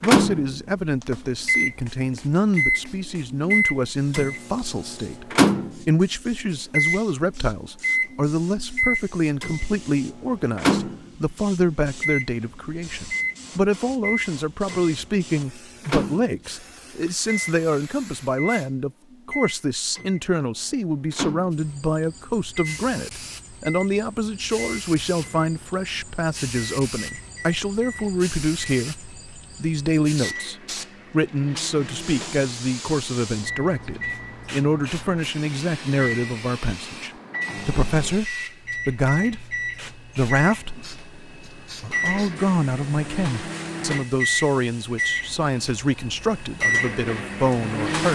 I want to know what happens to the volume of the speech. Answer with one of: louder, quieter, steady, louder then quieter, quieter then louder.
steady.